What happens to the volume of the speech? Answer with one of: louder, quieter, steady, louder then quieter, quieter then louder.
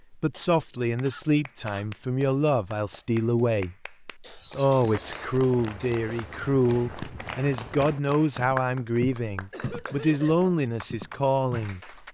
steady.